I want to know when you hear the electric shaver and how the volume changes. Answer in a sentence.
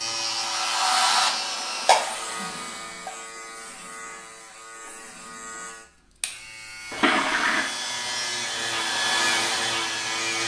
The electric shaver can be heard from 0.0 to 10.4 s, getting quieter then louder.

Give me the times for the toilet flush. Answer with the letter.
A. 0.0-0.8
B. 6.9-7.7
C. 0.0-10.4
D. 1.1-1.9
B.